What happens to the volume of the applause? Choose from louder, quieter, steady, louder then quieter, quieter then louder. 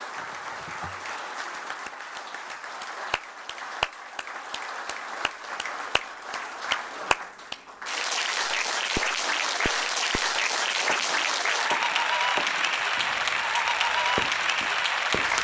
louder.